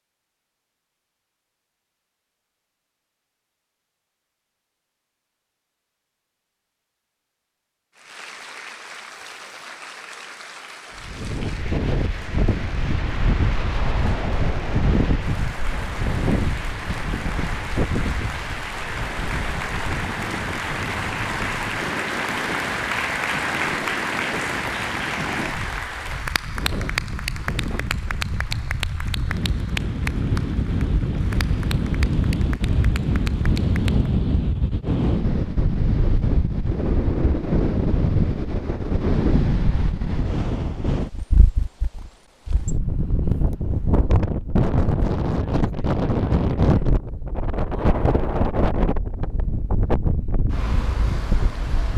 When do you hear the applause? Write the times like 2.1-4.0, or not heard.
8.0-34.1.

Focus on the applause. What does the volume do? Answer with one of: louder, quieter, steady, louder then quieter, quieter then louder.
louder then quieter.